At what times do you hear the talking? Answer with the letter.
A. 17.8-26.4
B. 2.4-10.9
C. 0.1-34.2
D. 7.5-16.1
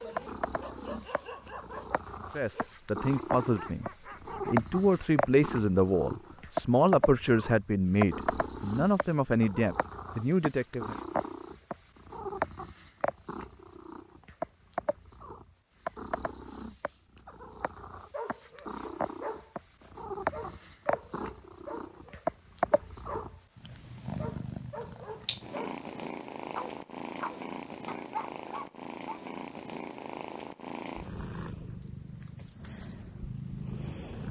B.